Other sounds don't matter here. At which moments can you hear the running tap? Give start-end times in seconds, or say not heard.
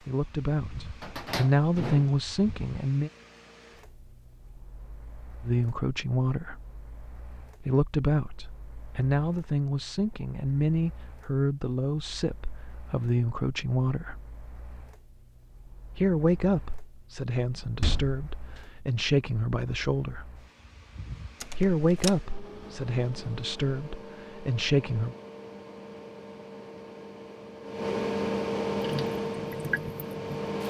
28.8-30.6.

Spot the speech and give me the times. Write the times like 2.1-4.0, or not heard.
0.0-3.1, 5.4-6.5, 7.6-14.2, 15.9-20.2, 21.6-25.1.